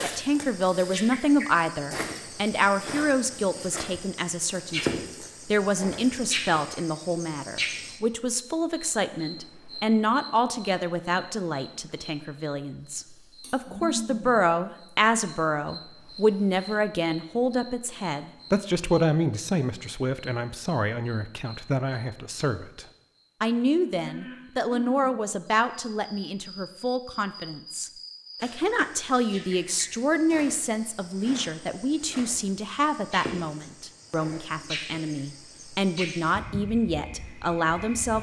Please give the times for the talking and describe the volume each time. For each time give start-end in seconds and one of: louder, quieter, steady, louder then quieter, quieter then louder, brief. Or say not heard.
0.0-38.1 steady.